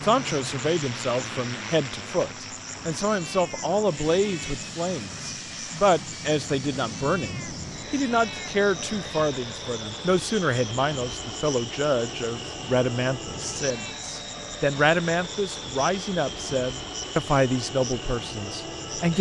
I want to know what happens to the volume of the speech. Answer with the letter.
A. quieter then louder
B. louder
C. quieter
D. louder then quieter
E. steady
E.